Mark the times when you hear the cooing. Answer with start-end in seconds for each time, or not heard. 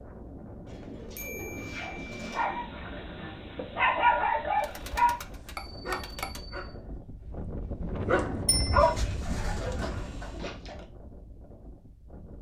0.7-2.5, 4.6-6.4, 8.8-10.5.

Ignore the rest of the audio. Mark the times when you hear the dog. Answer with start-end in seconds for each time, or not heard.
1.8-10.8.